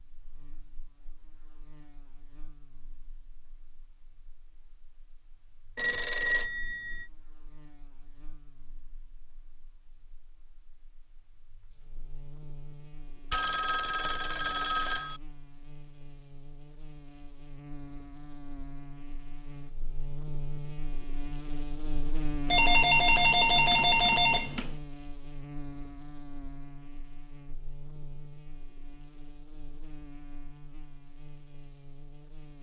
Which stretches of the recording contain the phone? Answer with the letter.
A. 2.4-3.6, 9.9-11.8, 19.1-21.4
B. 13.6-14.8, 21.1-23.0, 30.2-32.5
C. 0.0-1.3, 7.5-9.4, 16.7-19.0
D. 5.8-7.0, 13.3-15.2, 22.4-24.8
D.